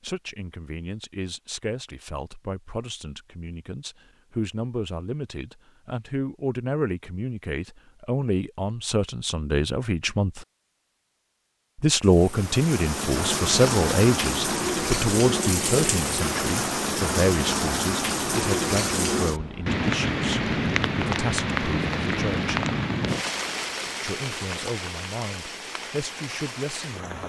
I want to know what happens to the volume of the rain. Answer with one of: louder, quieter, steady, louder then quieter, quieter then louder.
quieter.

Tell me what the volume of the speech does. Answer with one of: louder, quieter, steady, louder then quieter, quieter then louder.
louder then quieter.